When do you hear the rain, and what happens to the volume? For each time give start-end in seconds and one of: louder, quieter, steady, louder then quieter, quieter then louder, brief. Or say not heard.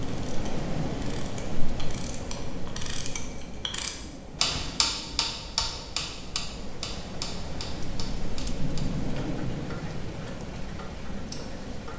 0.0-11.9 quieter then louder.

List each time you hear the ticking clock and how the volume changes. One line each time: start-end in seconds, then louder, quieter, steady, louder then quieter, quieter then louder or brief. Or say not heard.
0.0-11.9 louder then quieter.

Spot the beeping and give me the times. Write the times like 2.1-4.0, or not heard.
not heard.